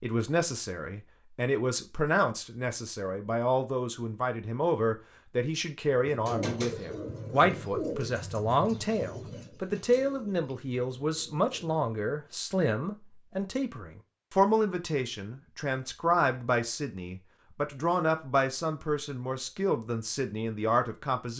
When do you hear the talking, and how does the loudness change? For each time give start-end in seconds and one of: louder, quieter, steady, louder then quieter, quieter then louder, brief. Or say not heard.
0.0-21.3 steady.